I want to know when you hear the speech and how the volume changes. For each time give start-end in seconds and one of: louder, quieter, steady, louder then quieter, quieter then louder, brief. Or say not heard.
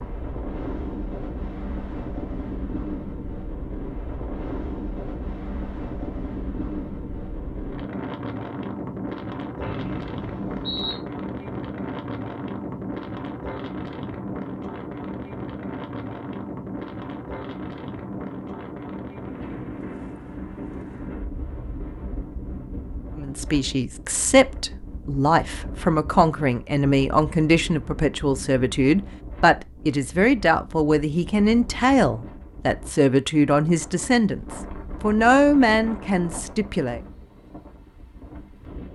23.1-37.0 steady.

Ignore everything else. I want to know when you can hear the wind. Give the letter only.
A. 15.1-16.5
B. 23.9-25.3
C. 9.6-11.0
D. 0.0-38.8
D.